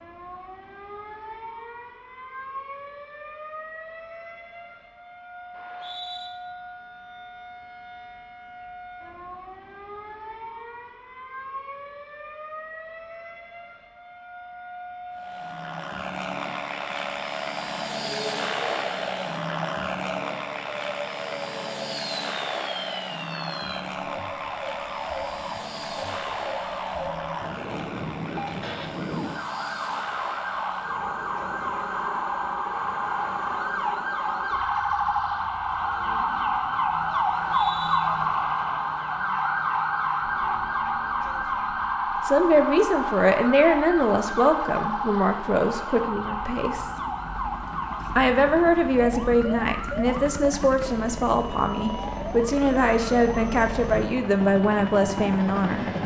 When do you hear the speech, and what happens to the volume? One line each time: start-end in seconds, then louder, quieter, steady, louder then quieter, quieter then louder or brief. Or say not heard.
42.2-46.9 quieter
48.1-55.9 steady.